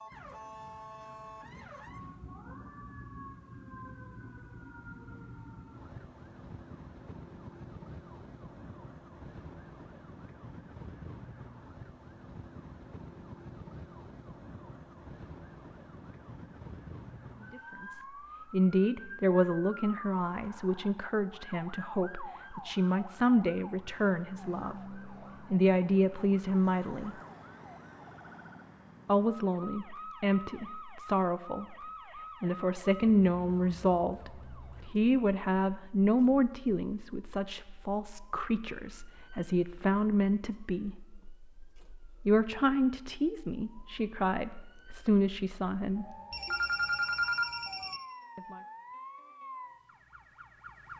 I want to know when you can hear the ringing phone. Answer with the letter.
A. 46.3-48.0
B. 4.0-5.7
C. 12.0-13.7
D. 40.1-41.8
A.